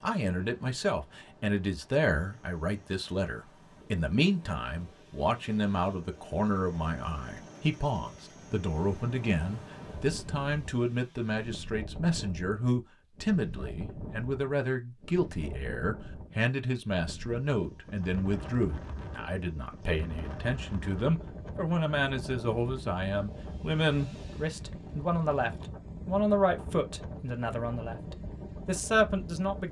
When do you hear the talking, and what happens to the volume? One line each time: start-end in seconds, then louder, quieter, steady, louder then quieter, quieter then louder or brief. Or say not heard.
0.0-29.6 steady.